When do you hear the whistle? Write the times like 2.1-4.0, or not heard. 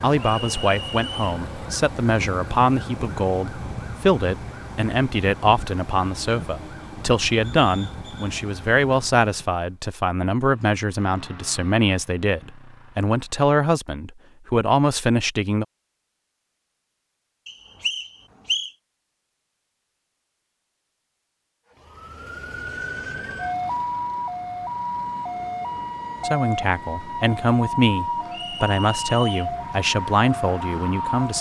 0.4-1.4, 17.4-18.7, 28.3-29.5.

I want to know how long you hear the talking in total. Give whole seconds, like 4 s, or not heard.
21 s.